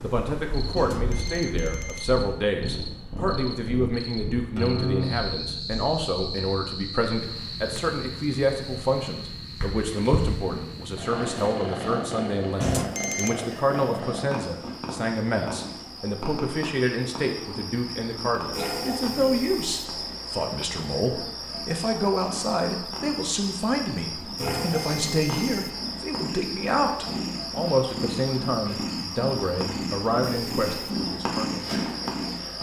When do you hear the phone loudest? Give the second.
13 s.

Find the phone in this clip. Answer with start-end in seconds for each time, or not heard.
0.8-2.0, 12.6-13.3, 24.4-25.6.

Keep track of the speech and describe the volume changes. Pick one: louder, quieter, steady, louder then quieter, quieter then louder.
steady.